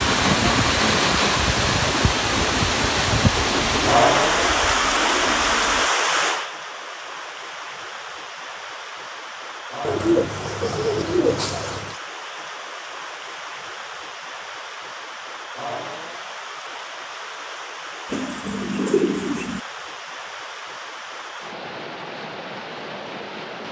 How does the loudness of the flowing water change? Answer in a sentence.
The volume of the flowing water goes down.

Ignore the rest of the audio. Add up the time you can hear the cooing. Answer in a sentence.
You can hear the cooing for 6 seconds altogether.